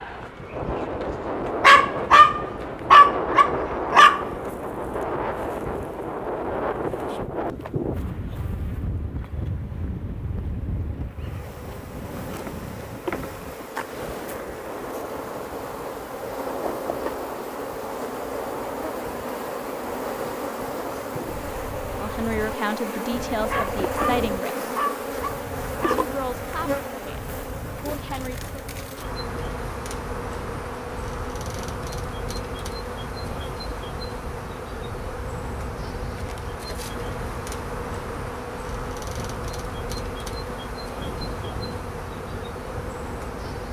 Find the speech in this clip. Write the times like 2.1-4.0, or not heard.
21.9-24.6, 25.8-28.4.